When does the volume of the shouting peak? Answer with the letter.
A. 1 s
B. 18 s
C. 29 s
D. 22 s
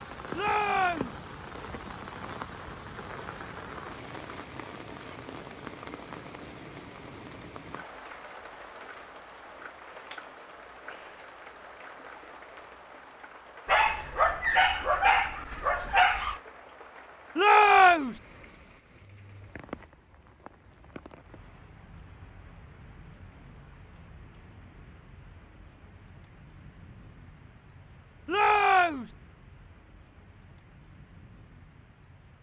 B.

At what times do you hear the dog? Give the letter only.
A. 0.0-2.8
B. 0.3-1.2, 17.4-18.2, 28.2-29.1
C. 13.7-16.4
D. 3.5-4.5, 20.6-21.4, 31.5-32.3
C.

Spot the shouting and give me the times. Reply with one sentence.
You can hear the shouting from 0.3 to 1.2 s, from 17.4 to 18.2 s and from 28.2 to 29.1 s.